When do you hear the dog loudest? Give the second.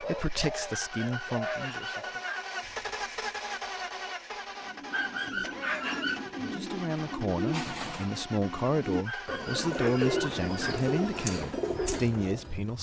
6 s.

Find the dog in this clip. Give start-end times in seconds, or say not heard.
0.7-2.5, 4.9-6.2, 9.1-10.8.